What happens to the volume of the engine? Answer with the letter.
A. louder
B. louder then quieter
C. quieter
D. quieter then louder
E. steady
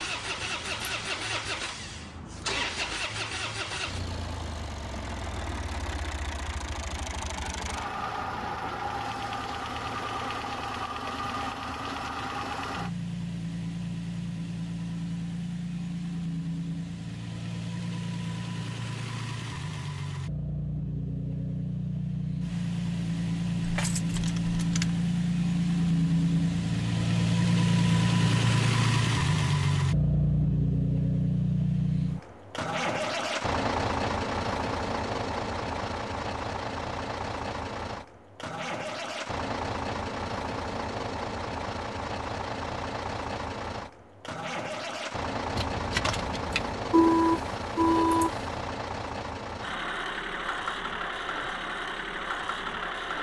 B.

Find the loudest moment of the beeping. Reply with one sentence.
The loudest moment of the beeping is at 47 seconds.